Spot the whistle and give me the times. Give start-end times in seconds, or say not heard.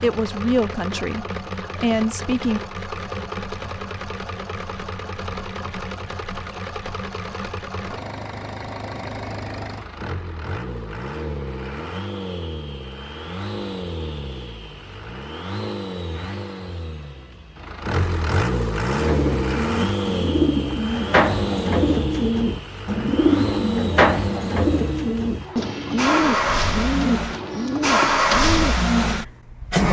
not heard.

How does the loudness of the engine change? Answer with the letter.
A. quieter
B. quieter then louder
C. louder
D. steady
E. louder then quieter
C.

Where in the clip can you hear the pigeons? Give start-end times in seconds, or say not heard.
18.9-28.9.